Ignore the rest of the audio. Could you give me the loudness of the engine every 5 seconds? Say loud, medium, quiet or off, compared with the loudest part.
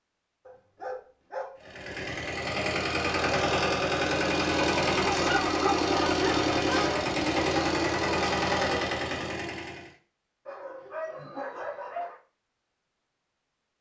loud, loud, off.